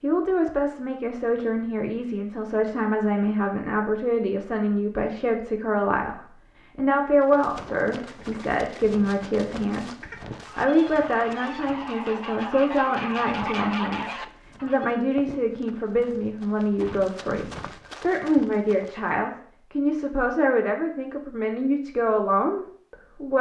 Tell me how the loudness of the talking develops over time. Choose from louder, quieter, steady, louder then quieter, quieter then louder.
steady.